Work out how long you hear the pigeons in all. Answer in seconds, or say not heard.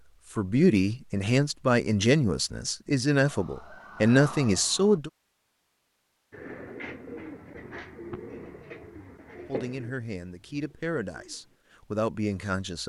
5 s.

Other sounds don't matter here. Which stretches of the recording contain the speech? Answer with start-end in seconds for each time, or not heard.
0.3-5.1, 9.4-12.8.